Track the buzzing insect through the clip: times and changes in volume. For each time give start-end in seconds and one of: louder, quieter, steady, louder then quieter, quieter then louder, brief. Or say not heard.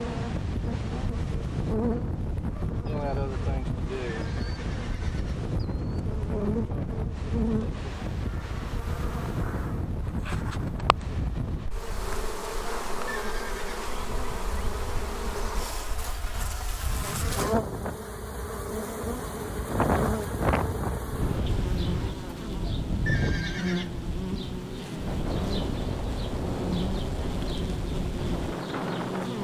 0.0-29.3 steady.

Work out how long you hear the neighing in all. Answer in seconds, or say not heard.
3 s.